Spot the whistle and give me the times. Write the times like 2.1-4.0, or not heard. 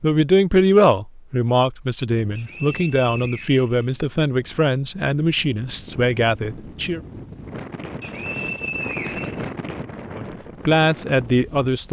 2.4-4.3, 8.0-9.5.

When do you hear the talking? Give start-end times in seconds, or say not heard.
0.0-7.0, 10.2-11.8.